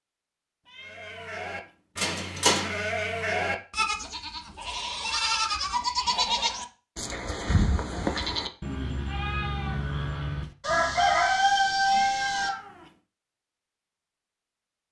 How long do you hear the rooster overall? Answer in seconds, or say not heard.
2 s.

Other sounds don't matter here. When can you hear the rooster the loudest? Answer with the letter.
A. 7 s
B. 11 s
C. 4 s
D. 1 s
B.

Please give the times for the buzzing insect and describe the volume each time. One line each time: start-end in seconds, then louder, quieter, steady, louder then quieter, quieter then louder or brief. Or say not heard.
not heard.